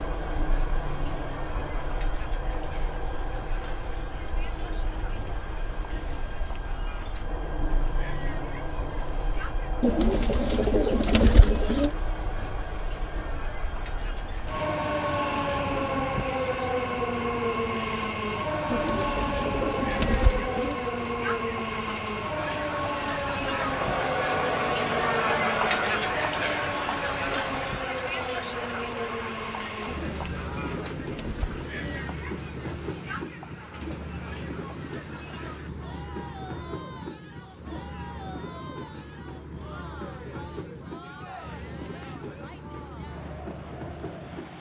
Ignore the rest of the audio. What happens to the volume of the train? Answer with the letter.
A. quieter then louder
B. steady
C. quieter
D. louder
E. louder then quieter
E.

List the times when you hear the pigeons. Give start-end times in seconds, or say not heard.
9.8-11.9, 18.7-20.8, 29.9-32.1.